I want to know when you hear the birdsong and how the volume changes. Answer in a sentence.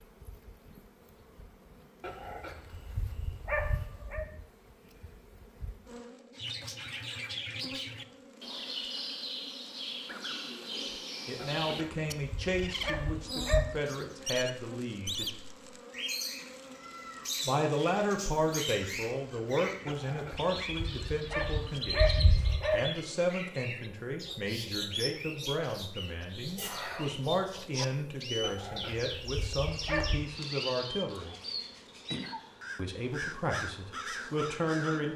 You can hear the birdsong from 6.3 to 35.0 s, at a steady volume.